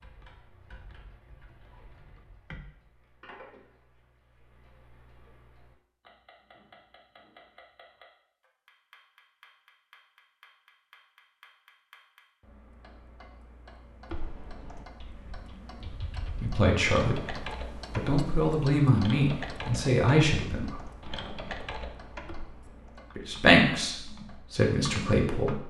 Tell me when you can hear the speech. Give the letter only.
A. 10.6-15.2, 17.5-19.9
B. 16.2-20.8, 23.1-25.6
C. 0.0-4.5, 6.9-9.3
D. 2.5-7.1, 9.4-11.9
B.